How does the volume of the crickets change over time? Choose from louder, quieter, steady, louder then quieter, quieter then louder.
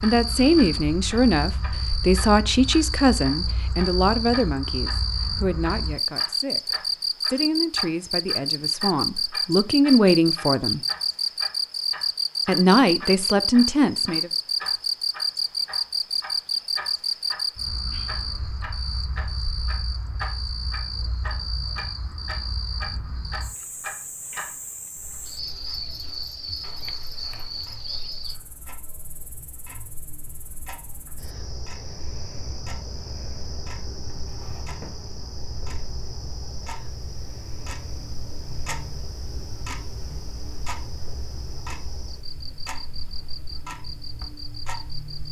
quieter.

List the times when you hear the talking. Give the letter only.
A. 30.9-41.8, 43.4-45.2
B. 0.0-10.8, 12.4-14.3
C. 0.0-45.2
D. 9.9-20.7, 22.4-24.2
B.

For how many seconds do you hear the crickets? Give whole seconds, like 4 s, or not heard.
45 s.